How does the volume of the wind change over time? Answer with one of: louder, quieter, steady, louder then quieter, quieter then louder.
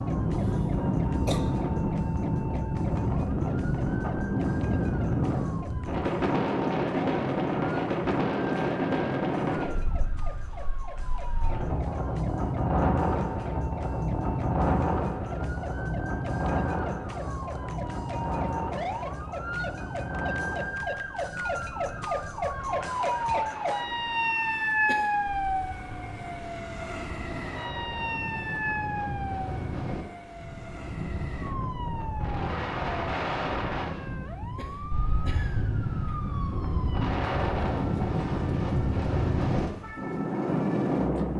quieter then louder.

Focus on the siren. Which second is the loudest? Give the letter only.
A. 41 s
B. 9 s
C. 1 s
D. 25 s
D.